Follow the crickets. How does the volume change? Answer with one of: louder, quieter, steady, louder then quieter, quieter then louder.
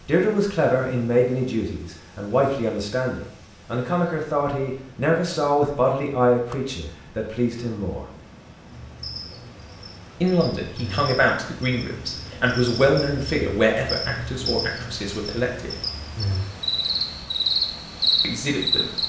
louder.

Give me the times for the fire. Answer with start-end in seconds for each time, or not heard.
not heard.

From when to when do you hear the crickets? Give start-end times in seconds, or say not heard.
8.7-19.0.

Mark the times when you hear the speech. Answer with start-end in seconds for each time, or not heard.
0.1-8.1, 10.2-15.8, 18.2-19.0.